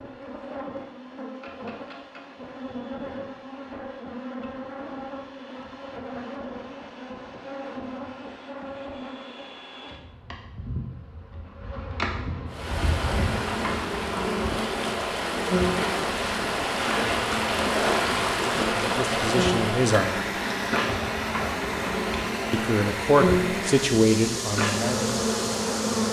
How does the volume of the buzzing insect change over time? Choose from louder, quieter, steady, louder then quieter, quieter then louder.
louder.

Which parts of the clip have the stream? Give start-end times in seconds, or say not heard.
12.4-26.0.